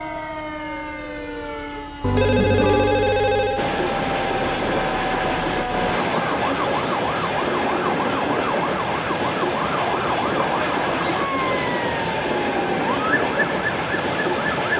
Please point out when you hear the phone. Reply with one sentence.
The phone can be heard from 2.0 to 3.6 s.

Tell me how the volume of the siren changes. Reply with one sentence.
The volume of the siren stays about the same.